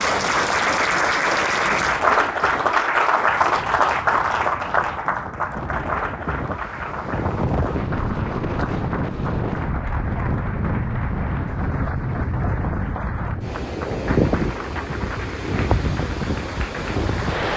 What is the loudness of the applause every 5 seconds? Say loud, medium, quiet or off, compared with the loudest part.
loud, medium, quiet, quiet.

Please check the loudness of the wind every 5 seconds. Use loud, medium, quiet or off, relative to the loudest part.
quiet, loud, loud, loud.